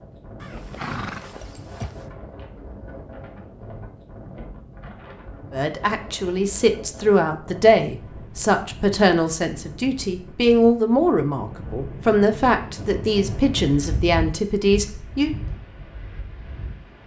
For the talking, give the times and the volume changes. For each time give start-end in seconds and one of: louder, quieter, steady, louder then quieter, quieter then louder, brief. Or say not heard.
5.5-15.3 steady.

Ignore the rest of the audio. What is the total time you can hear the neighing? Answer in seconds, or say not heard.
2 s.